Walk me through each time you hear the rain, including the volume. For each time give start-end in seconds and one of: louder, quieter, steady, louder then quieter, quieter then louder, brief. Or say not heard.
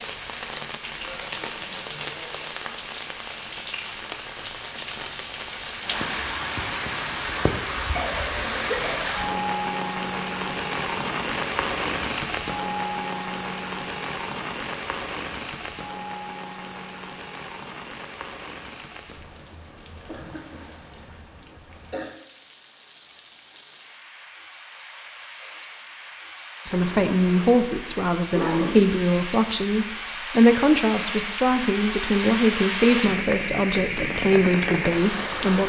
0.0-35.6 quieter then louder.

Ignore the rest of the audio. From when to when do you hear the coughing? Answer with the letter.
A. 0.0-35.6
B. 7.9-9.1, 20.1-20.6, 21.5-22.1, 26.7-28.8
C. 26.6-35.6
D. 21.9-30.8
B.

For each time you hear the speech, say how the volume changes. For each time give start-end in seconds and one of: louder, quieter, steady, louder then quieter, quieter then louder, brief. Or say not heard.
26.6-35.6 steady.